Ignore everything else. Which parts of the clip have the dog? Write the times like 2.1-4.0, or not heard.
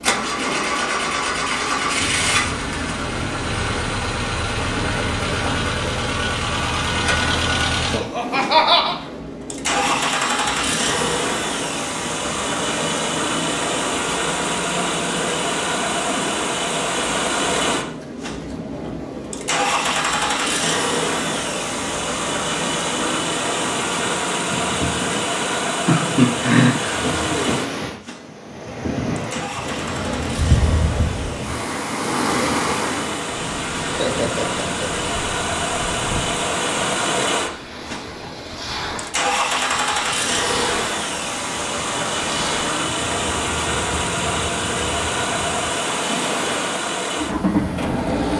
not heard.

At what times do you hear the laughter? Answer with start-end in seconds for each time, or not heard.
7.9-8.9, 25.9-27.1, 33.9-34.9.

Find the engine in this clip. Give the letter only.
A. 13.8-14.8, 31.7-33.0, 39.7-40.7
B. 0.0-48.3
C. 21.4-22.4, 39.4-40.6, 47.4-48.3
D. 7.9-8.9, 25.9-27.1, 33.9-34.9
B.